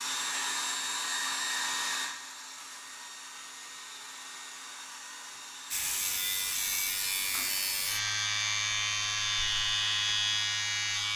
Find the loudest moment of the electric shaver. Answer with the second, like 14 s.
10 s.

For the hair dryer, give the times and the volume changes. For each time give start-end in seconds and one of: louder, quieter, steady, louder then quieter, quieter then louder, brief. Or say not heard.
0.0-11.1 quieter.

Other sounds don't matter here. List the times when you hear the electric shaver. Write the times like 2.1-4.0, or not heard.
5.7-11.1.